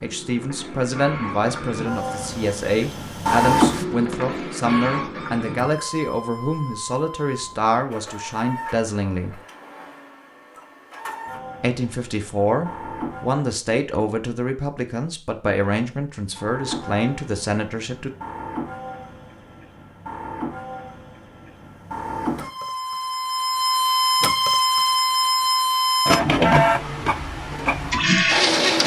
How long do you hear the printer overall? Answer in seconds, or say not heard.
26 s.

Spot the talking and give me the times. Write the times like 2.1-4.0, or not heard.
0.0-9.4, 11.6-18.1.